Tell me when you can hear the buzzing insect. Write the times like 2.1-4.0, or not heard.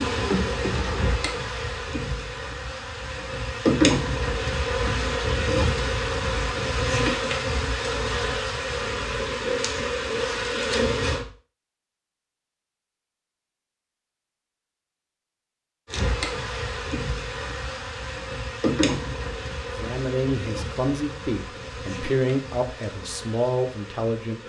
0.0-11.2, 15.8-24.4.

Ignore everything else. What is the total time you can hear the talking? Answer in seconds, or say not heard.
5 s.